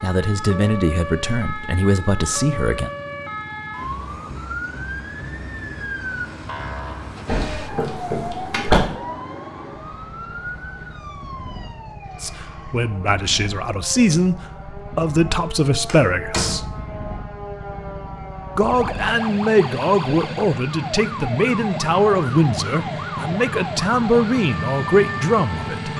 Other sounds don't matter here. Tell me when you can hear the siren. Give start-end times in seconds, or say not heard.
0.0-25.9.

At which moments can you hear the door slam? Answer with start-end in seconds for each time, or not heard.
7.2-8.8, 15.8-16.9.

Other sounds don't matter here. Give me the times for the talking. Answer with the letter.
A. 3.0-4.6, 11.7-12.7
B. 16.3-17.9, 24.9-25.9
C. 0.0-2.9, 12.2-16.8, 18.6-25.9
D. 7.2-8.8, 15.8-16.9
C.